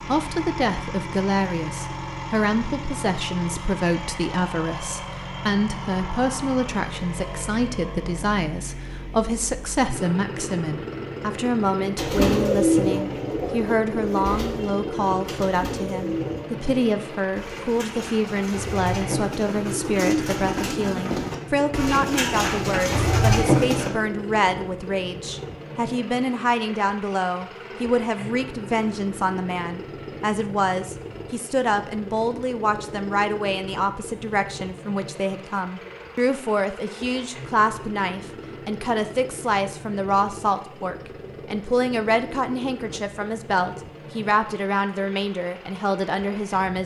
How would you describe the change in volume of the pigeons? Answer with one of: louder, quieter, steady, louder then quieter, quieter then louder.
quieter then louder.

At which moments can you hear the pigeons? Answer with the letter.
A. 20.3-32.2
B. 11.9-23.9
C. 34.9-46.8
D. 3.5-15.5
B.